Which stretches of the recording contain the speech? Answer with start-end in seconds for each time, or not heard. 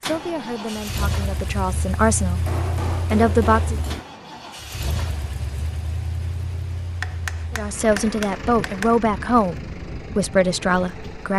0.1-3.8, 7.5-11.3.